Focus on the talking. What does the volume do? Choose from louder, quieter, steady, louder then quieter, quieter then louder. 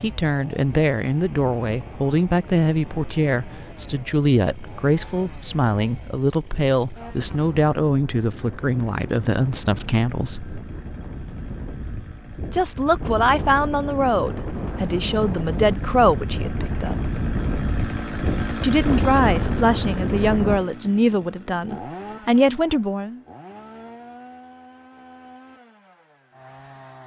steady.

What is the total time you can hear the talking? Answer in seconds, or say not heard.
20 s.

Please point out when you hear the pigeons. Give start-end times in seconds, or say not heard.
not heard.